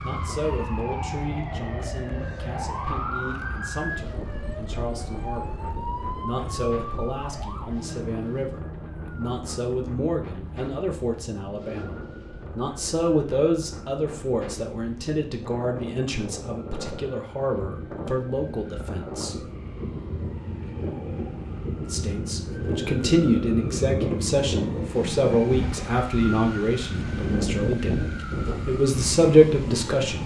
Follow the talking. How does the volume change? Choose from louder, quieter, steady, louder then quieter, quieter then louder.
louder.